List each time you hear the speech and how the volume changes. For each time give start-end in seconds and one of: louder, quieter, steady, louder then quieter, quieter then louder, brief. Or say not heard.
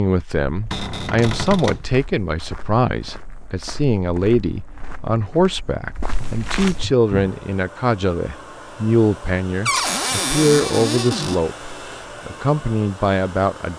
0.0-13.7 steady.